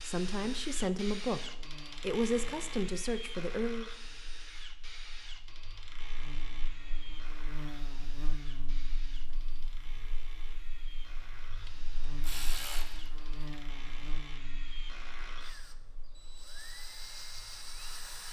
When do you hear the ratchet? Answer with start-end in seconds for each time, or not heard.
11.6-13.6.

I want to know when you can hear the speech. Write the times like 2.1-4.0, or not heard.
0.0-3.9.